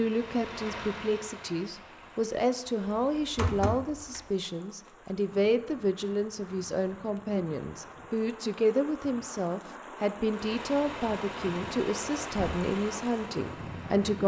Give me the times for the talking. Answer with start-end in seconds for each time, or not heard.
0.0-14.2.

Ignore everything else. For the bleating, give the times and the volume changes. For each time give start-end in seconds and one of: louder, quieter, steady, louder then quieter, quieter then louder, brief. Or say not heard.
not heard.